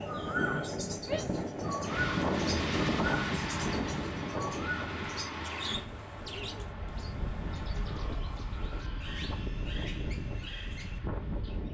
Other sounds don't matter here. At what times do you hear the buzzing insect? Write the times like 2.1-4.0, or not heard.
not heard.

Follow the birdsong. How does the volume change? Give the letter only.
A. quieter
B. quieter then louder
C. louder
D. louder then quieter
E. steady
B.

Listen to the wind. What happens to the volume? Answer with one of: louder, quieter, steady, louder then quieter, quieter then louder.
quieter.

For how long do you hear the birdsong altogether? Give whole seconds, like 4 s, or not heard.
12 s.